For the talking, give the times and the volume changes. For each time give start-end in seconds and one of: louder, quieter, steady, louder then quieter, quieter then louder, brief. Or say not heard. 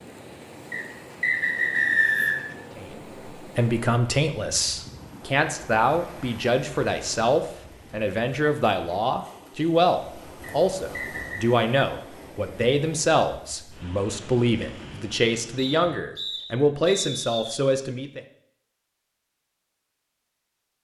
2.8-18.2 steady.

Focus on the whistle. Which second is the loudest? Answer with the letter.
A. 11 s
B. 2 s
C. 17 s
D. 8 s
B.